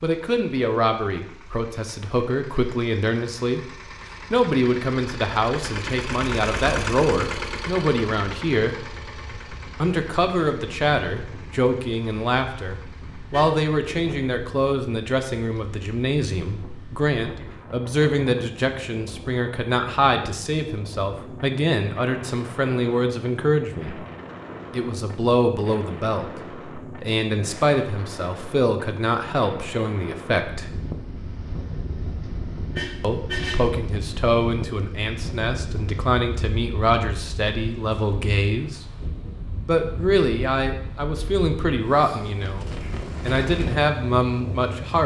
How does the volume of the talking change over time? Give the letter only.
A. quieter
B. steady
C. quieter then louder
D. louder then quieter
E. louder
B.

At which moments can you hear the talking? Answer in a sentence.
The talking can be heard from 0.0 to 8.9 s, from 9.8 to 24.0 s, from 24.7 to 30.7 s and from 33.0 to 45.0 s.